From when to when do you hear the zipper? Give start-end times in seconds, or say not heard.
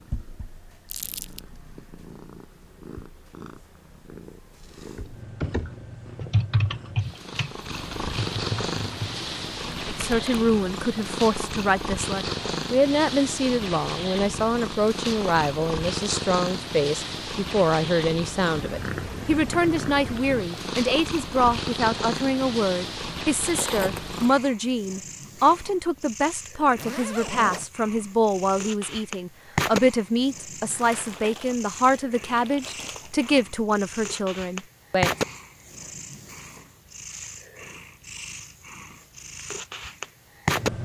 26.8-27.7.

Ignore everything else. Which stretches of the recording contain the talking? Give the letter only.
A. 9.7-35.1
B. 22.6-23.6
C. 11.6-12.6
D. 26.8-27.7
A.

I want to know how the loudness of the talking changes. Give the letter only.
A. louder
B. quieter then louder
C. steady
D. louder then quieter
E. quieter
C.